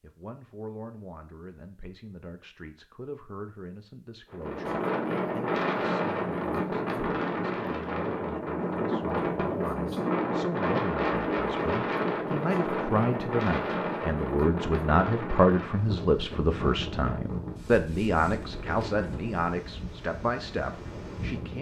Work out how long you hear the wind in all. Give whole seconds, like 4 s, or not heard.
17 s.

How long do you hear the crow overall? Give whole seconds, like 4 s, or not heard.
not heard.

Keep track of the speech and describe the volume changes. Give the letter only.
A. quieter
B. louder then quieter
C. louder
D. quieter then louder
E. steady
C.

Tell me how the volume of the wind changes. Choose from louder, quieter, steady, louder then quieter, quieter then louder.
quieter.